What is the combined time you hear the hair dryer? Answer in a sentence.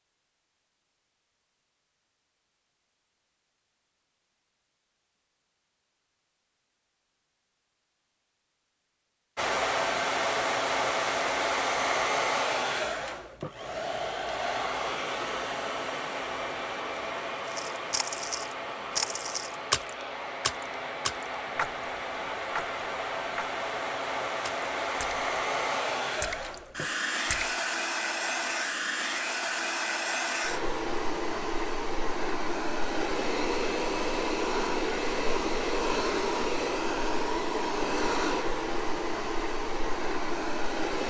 The hair dryer can be heard for 32 seconds in total.